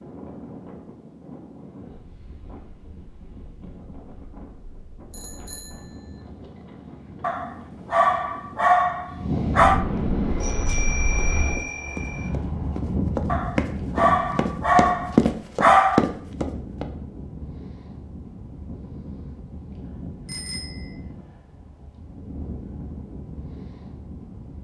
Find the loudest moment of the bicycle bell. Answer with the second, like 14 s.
11 s.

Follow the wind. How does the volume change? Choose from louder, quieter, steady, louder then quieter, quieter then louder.
louder then quieter.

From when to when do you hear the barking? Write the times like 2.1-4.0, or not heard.
7.2-9.8, 13.2-16.1.